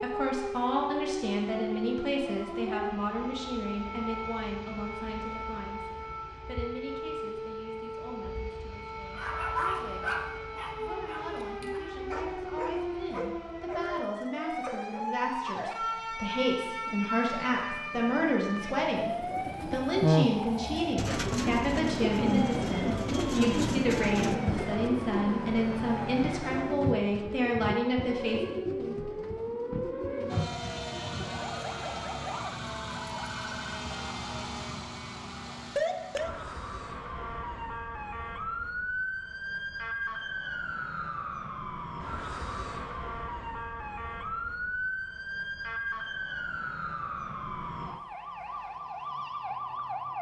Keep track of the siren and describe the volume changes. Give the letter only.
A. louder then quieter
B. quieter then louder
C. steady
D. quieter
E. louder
C.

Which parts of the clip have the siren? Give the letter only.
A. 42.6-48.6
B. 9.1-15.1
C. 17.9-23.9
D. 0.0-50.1
D.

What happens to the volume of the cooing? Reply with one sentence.
The volume of the cooing goes down.